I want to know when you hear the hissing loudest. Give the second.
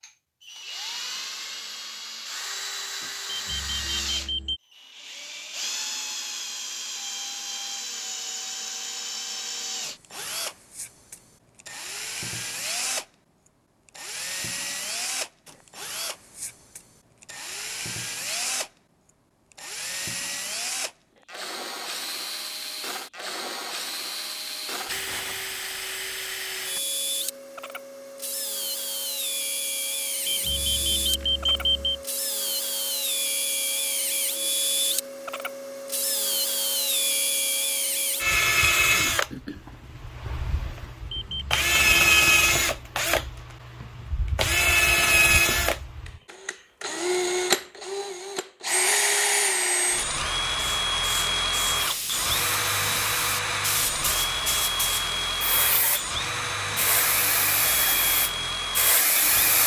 59 s.